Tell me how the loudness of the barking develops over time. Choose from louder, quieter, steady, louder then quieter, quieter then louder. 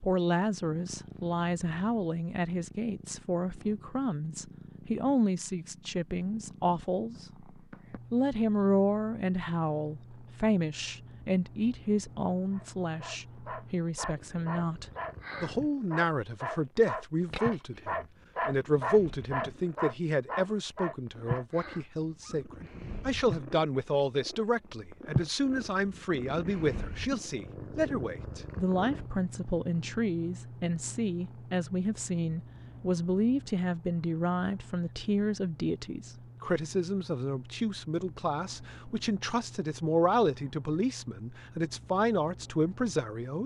louder then quieter.